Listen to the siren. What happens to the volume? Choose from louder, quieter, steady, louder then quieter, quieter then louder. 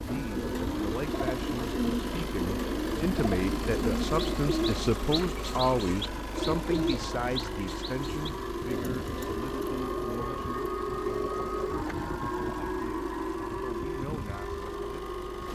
louder.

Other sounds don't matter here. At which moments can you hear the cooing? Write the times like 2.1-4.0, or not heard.
0.0-11.7.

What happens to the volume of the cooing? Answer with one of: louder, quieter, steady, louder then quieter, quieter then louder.
quieter.